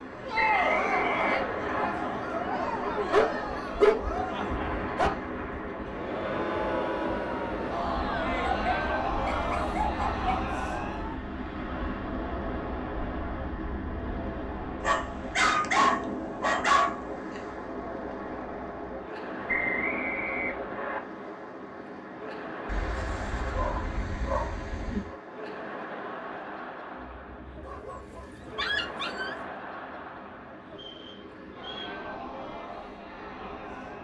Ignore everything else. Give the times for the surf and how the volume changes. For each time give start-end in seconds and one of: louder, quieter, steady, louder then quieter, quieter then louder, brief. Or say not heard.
0.0-33.9 quieter.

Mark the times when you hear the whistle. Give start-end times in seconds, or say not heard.
0.3-1.9, 19.4-21.0, 30.7-32.0.